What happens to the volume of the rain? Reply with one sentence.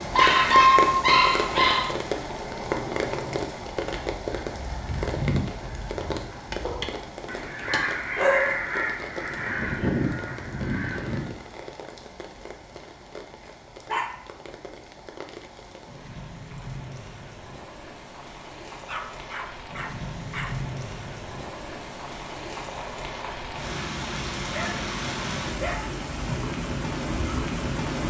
The loudness of the rain goes down, then up.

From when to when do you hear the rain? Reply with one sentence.
The rain can be heard from 0.0 to 28.0 s.